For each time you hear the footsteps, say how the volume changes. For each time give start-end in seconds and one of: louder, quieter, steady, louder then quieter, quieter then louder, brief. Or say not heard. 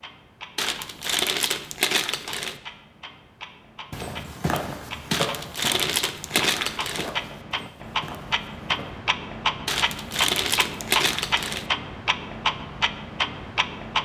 3.9-8.9 quieter.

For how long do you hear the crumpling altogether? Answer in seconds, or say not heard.
6 s.